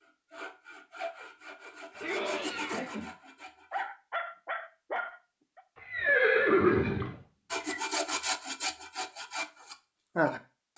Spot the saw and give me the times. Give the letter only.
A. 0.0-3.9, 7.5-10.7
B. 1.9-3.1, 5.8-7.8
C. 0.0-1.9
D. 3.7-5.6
A.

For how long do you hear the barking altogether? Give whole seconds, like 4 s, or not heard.
2 s.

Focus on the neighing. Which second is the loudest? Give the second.
7 s.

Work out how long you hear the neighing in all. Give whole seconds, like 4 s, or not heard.
3 s.